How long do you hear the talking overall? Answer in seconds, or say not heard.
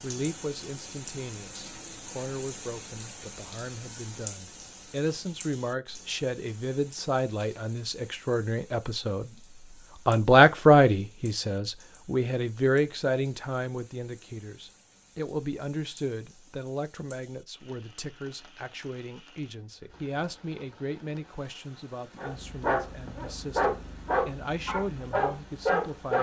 25 s.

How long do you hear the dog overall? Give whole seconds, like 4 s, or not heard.
4 s.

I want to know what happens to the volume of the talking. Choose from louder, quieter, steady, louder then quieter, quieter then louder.
louder then quieter.